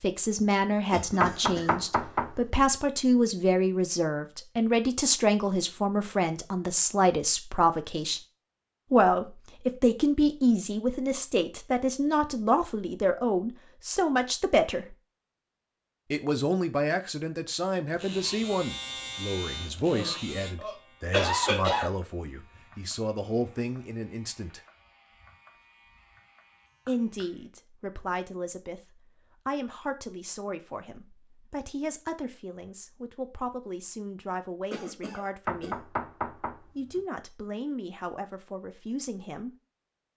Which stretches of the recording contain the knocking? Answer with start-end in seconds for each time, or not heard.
1.2-2.3, 35.5-37.0.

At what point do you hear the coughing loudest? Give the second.
21 s.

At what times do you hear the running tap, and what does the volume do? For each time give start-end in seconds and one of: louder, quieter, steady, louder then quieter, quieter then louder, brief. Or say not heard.
not heard.